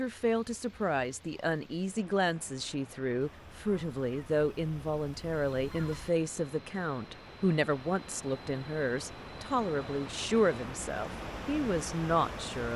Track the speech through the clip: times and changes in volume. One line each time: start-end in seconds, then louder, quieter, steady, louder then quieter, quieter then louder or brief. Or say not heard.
0.0-12.7 steady.